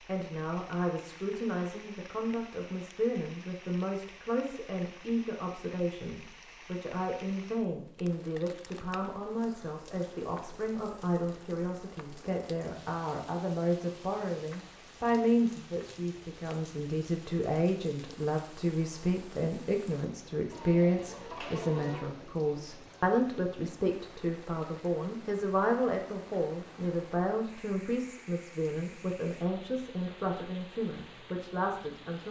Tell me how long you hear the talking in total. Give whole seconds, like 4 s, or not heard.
32 s.